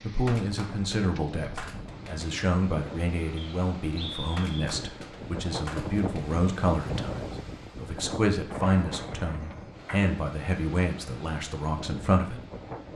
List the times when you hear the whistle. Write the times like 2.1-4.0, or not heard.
3.4-4.7.